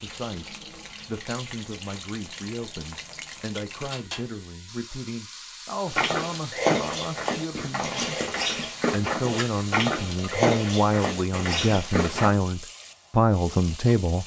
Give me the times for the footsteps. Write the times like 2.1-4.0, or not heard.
5.8-12.3.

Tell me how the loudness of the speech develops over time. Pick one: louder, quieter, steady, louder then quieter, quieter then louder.
louder.